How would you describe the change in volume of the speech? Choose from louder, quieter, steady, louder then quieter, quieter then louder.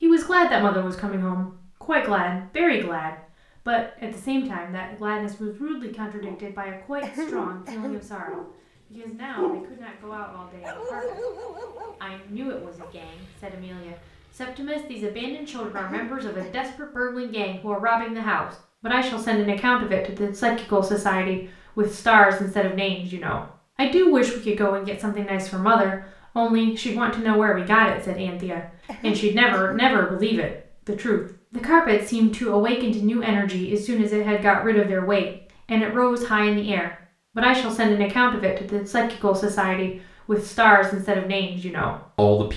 quieter then louder.